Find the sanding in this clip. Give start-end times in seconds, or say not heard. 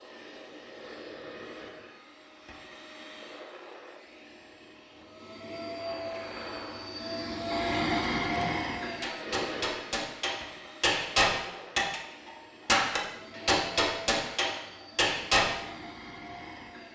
not heard.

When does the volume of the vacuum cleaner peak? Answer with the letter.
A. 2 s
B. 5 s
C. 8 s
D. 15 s
C.